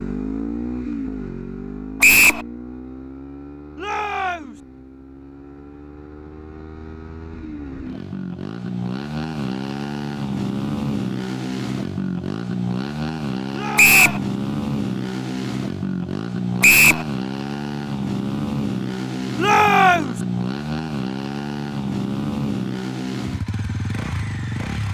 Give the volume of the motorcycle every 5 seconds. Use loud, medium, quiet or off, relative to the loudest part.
medium, medium, loud, loud, loud.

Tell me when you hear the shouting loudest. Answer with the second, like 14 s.
20 s.